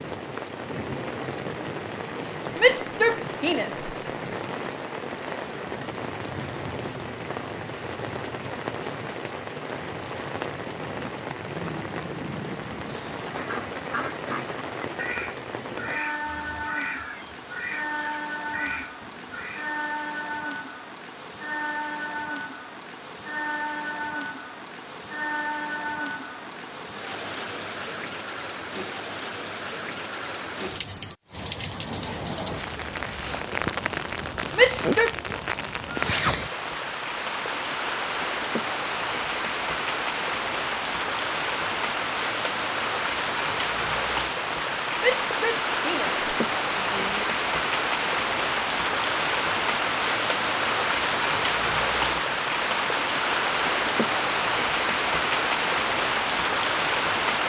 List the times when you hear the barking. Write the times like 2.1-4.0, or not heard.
not heard.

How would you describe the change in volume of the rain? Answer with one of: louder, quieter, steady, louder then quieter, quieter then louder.
louder.